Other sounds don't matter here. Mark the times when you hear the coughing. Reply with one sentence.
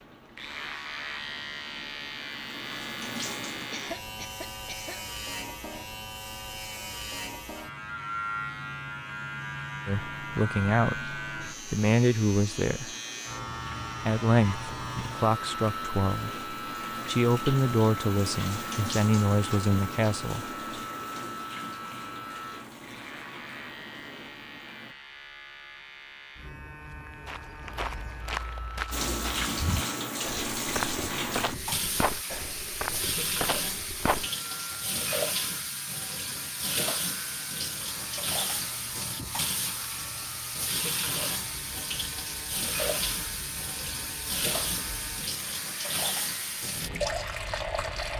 The coughing can be heard from 3.7 to 5.0 s.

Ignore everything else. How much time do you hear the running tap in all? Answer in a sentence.
The running tap can be heard for 38 seconds in total.